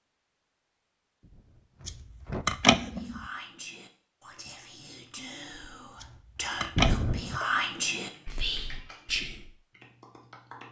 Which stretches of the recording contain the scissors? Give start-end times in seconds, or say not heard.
1.9-3.2, 6.0-7.3.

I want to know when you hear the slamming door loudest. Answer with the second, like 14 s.
7 s.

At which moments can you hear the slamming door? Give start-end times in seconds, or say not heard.
1.2-2.5, 6.8-7.4.